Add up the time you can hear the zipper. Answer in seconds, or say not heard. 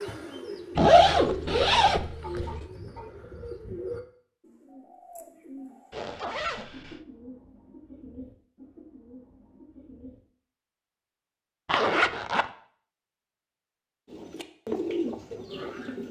4 s.